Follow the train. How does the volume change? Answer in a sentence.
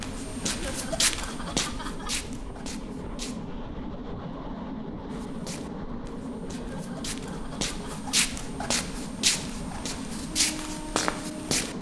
The volume of the train stays about the same.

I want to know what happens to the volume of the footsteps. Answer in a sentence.
The loudness of the footsteps goes down, then up.